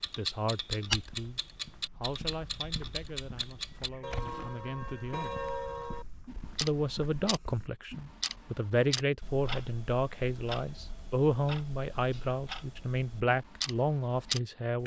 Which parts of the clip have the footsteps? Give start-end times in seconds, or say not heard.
0.8-8.1.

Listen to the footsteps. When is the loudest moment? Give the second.
1 s.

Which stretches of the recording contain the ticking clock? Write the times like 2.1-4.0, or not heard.
0.0-14.8.